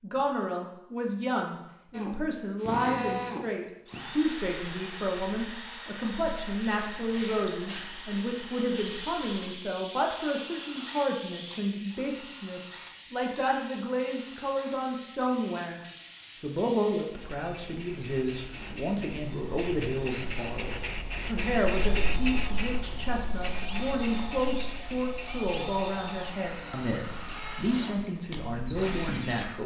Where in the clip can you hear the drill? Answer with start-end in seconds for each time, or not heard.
1.9-29.5.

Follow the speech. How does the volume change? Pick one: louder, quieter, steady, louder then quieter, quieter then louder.
steady.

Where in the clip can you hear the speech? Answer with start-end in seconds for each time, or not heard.
0.0-15.8, 16.4-29.6.